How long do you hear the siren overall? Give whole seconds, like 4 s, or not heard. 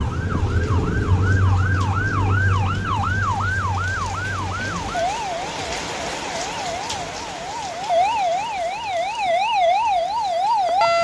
11 s.